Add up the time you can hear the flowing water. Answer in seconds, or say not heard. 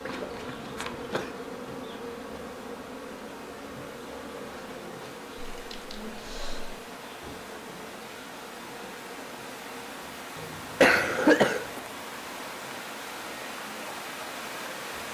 15 s.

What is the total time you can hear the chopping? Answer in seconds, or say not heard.
not heard.